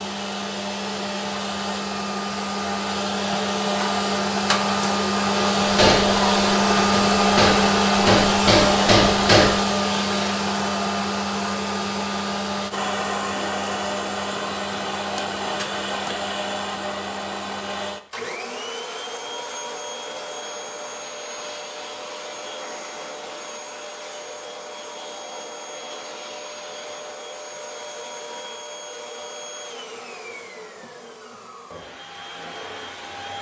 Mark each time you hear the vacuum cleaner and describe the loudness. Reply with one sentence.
The vacuum cleaner can be heard from 0.0 to 33.3 s, getting quieter.